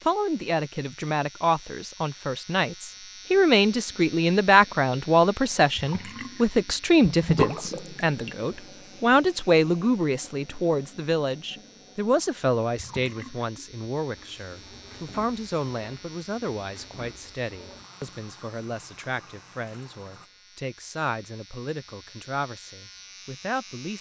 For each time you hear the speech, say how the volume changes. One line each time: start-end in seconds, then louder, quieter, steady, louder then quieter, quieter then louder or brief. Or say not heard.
0.0-23.9 quieter.